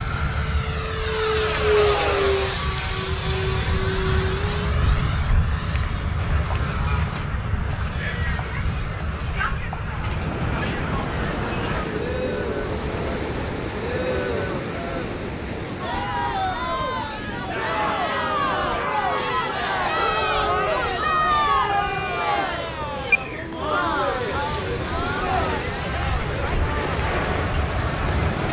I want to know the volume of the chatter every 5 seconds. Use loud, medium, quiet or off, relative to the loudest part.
off, medium, medium, loud, loud, medium.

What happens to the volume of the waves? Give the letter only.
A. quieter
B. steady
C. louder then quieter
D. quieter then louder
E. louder
D.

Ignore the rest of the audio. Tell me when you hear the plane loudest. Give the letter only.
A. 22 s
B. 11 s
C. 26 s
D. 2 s
D.